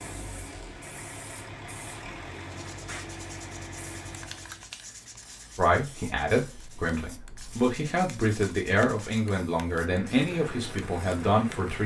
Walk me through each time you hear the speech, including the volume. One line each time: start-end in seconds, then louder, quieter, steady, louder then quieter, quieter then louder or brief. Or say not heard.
5.5-11.8 steady.